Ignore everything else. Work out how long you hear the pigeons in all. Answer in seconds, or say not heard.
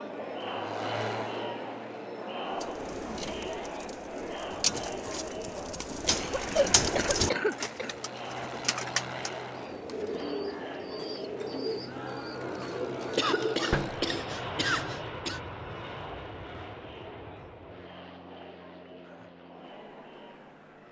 11 s.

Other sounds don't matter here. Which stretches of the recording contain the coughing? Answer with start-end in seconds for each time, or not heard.
6.0-8.0, 13.2-15.4.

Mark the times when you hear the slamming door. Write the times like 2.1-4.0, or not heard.
13.7-14.1.